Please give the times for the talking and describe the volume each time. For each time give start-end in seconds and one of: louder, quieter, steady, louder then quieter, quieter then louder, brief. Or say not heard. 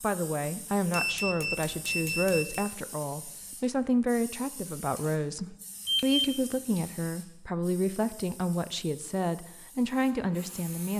0.0-10.9 steady.